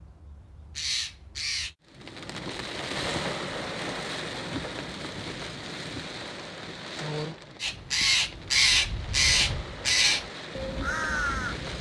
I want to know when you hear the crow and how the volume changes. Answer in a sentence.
You can hear the crow briefly from 0.0 to 1.8 s; and from 7.6 to 11.7 s, getting quieter.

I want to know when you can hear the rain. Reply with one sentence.
You can hear the rain from 1.9 to 11.7 s.